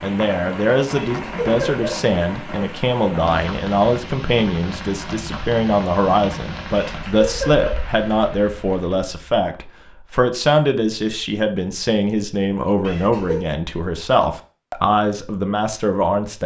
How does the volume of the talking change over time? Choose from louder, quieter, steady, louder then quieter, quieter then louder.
steady.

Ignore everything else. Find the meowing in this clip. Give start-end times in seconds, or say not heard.
1.1-1.9, 6.8-7.8, 12.8-13.4.